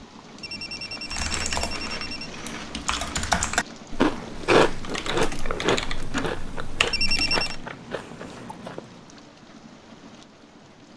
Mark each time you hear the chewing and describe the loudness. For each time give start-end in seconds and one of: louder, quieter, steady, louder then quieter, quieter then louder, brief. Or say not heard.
1.2-8.8 louder then quieter.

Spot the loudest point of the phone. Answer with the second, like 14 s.
7 s.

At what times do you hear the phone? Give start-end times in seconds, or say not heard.
0.4-2.3, 6.9-7.5.